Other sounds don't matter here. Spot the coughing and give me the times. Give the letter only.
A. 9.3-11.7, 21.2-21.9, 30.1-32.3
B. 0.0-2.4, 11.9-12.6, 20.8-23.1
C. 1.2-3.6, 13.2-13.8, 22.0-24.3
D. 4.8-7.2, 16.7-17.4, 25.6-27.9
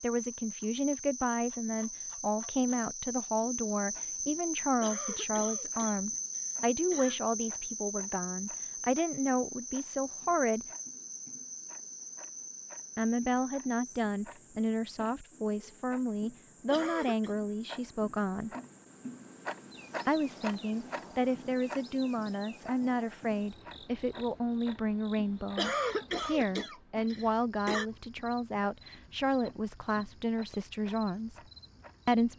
D.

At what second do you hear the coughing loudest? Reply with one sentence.
The volume of the coughing peaks at 26 seconds.